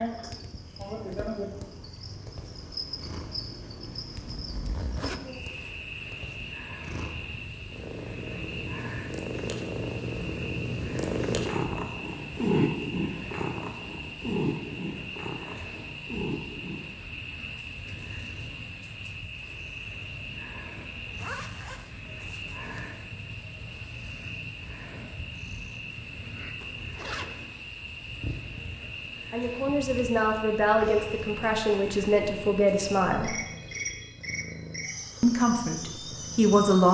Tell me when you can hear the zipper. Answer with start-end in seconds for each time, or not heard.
4.2-5.2, 21.1-22.7, 26.6-27.6.